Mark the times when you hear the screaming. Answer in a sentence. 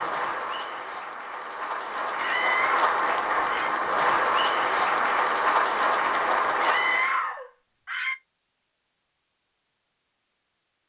The screaming can be heard from 2.1 to 3.7 s and from 6.5 to 8.2 s.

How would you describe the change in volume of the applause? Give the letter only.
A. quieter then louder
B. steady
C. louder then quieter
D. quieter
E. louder
E.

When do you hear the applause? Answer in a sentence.
The applause can be heard from 0.0 to 7.2 s.